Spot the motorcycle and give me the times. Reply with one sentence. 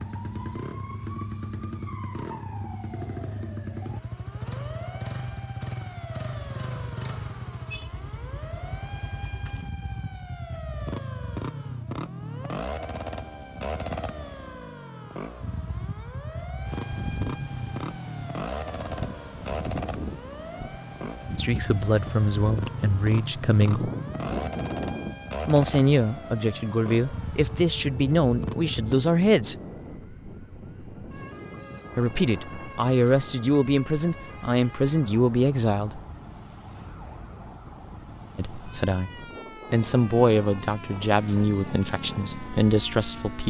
You can hear the motorcycle from 0.0 to 28.9 s and from 39.9 to 43.4 s.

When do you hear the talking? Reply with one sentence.
You can hear the talking from 21.4 to 23.9 s, from 25.4 to 29.6 s, from 31.9 to 36.0 s, from 38.4 to 39.1 s and from 39.7 to 43.4 s.